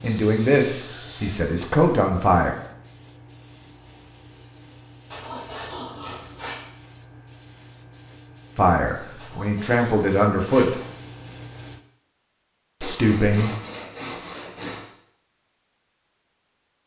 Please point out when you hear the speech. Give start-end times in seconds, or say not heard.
0.0-2.5, 8.6-10.8, 12.8-13.5.